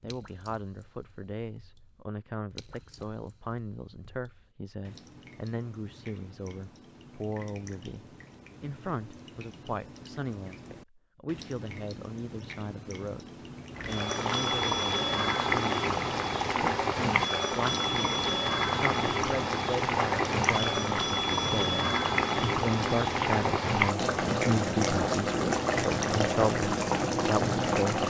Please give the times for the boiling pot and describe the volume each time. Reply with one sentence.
You can hear the boiling pot from 13.8 to 28.0 s, at a steady volume.